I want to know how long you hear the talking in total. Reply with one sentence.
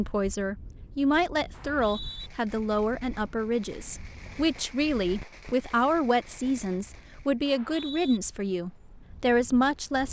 The talking can be heard for 10 seconds in total.